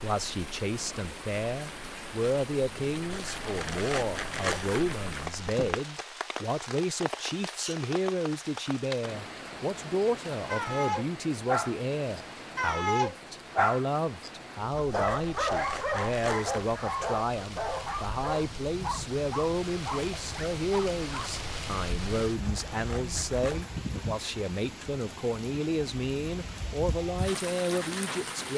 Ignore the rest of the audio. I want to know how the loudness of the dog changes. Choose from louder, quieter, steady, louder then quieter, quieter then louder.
quieter.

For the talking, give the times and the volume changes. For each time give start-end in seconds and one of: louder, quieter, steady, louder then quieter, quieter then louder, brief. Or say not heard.
0.0-28.5 steady.